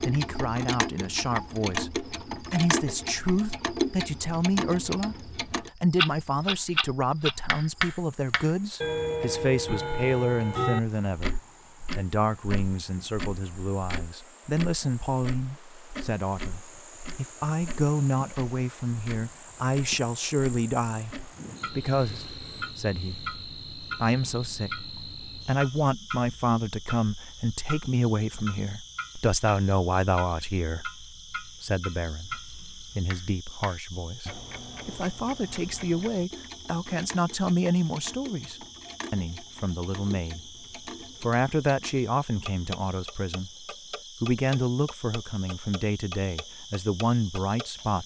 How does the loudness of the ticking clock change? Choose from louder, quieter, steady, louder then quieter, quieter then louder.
quieter.